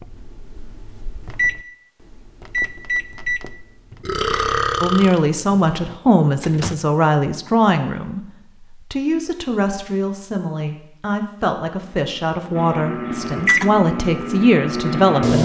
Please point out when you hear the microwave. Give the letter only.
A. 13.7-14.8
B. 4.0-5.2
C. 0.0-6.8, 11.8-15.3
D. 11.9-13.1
C.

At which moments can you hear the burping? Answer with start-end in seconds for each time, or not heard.
4.0-5.2.